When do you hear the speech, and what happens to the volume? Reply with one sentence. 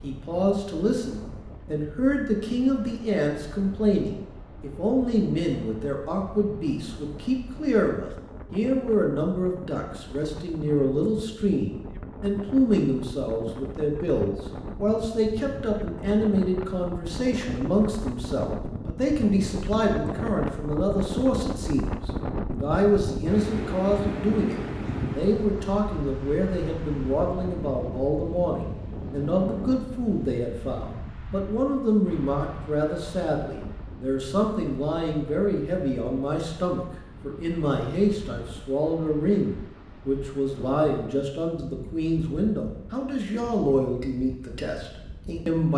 You can hear the speech from 0.0 to 45.7 s, at a steady volume.